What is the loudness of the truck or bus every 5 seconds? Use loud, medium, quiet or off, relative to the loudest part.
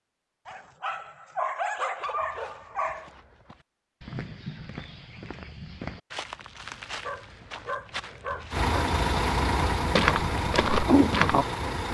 off, loud, loud.